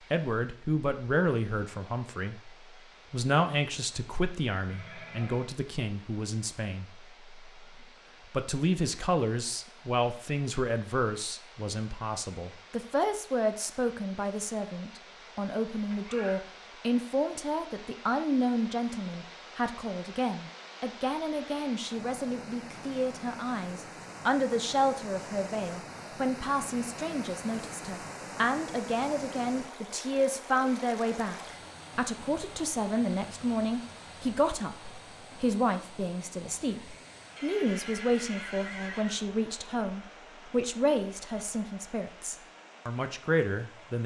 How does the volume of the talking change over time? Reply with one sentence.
The volume of the talking stays about the same.